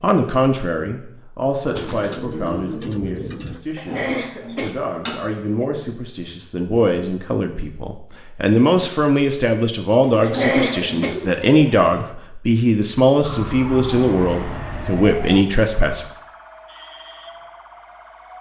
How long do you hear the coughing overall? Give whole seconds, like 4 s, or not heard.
3 s.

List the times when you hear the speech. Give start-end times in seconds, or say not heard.
0.0-16.1.